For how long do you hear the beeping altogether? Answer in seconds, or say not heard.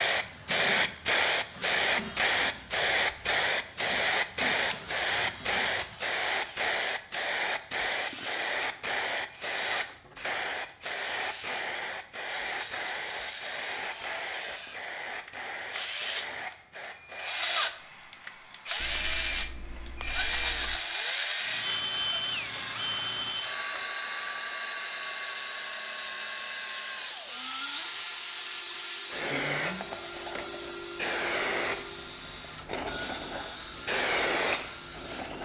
2 s.